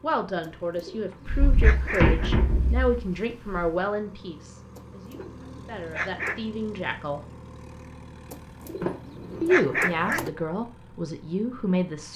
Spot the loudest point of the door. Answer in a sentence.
The volume of the door peaks at 2 seconds.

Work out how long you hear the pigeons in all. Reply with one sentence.
The pigeons can be heard for 6 seconds in total.